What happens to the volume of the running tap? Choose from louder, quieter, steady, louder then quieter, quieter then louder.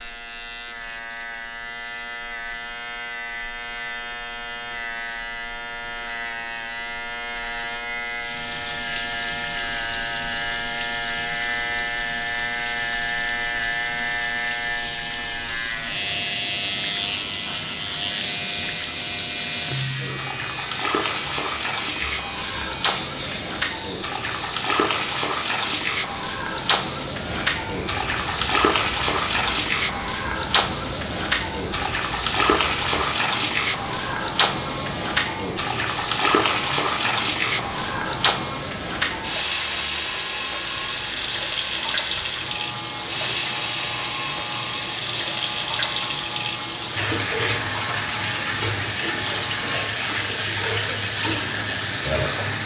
louder.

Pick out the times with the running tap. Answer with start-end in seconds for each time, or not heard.
8.1-52.6.